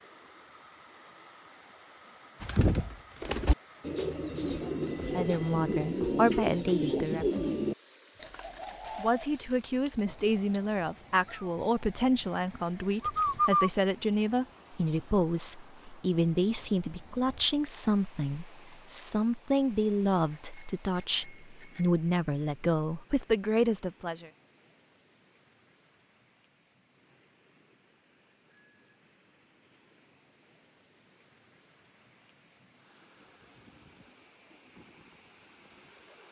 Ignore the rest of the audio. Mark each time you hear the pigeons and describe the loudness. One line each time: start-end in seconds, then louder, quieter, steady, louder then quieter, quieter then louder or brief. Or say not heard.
2.4-13.7 quieter then louder.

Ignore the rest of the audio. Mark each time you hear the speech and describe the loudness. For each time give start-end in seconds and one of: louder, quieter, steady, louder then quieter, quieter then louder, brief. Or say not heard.
5.1-7.2 brief
8.9-24.3 steady.